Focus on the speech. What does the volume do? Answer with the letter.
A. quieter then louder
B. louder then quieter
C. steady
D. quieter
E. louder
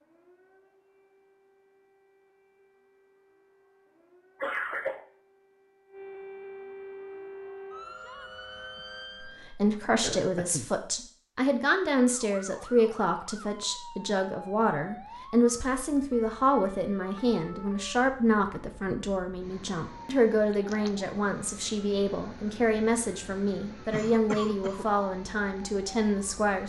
C.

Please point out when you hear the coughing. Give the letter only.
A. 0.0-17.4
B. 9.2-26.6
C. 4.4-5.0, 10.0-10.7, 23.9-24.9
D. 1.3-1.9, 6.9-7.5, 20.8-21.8
C.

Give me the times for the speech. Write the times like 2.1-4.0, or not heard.
9.2-26.6.